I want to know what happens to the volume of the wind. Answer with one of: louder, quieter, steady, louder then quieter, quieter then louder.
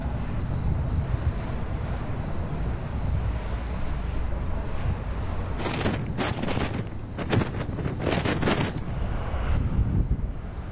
louder.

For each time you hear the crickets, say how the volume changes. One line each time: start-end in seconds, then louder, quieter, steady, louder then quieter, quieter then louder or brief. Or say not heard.
0.0-10.6 quieter.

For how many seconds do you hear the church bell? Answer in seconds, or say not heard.
not heard.